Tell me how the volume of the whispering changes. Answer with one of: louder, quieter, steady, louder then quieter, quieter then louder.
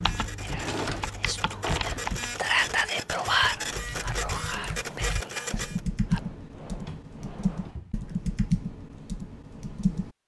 louder then quieter.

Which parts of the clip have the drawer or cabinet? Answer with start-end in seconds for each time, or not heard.
0.4-2.1, 6.0-8.0.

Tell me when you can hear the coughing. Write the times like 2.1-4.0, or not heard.
not heard.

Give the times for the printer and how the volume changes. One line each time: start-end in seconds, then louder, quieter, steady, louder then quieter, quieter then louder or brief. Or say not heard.
0.0-5.8 louder.